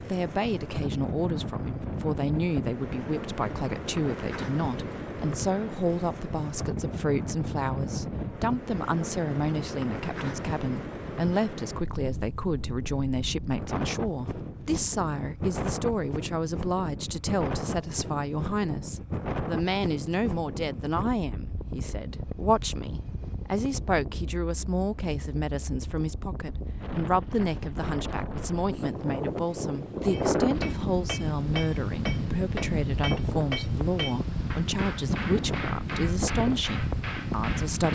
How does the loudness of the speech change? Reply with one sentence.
The loudness of the speech stays about the same.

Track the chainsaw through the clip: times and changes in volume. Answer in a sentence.
You can't hear the chainsaw here.